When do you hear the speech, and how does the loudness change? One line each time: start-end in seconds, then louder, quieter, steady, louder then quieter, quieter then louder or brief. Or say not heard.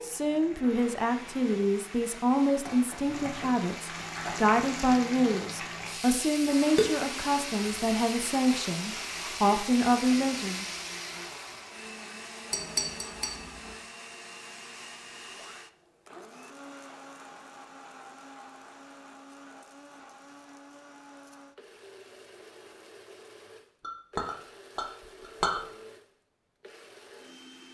0.0-10.7 steady.